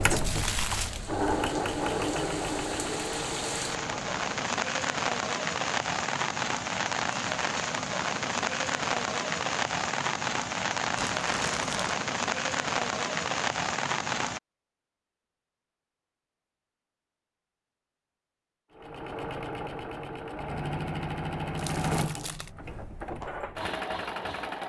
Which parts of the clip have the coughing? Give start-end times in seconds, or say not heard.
not heard.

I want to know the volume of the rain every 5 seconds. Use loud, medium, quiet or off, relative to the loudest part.
medium, loud, loud, off, off.